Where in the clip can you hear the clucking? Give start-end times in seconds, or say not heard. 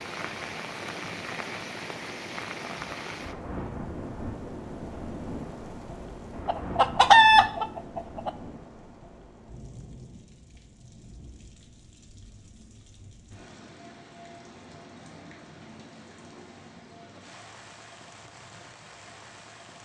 6.5-8.3.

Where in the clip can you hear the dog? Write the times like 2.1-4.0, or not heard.
not heard.